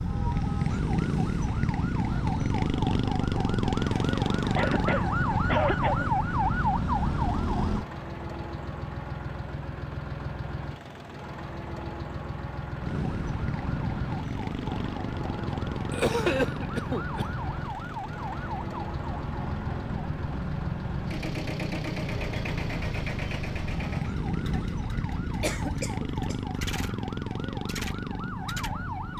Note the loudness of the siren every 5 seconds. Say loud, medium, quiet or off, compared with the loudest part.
loud, loud, medium, medium, medium, medium.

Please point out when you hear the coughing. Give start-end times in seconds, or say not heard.
4.5-6.0, 15.9-17.2, 25.2-26.4.